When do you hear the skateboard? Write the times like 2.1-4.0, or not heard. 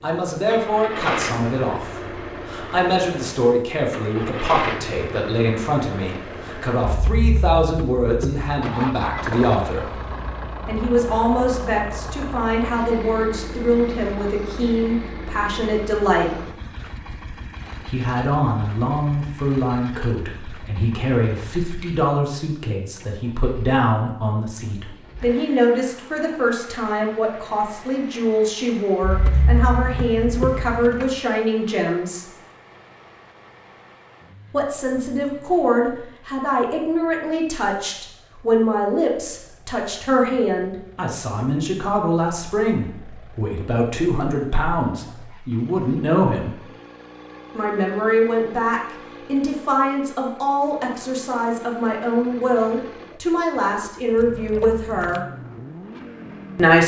not heard.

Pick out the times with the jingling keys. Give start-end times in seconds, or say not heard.
6.8-9.3, 29.0-31.1, 54.1-55.2.